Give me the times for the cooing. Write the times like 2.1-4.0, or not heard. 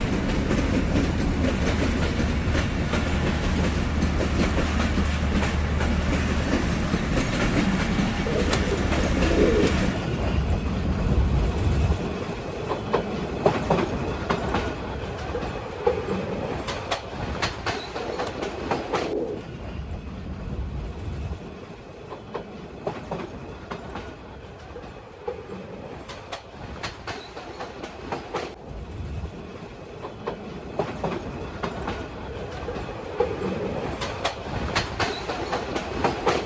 8.2-10.0, 18.0-19.4, 32.3-33.7.